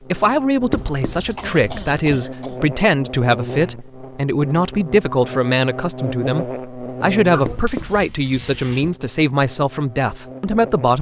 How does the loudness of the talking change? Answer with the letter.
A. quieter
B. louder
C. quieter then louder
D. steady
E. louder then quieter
D.